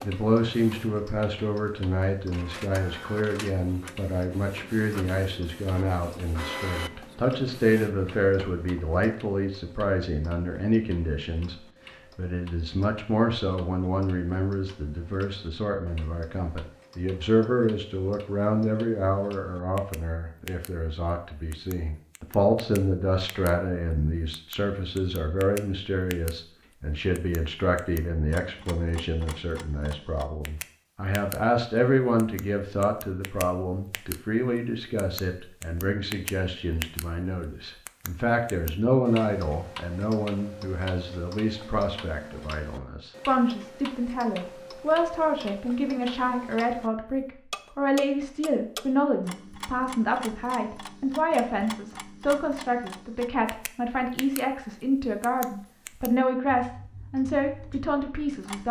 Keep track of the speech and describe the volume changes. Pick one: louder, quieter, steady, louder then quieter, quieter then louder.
steady.